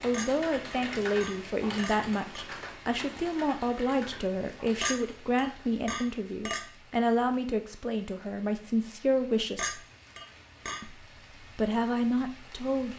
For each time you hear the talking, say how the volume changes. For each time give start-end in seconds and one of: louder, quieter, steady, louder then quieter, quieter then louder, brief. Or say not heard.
0.0-9.8 steady
10.8-12.9 brief.